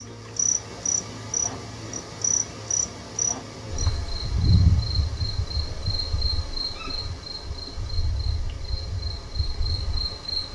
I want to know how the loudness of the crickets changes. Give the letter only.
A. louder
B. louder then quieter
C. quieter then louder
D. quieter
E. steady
D.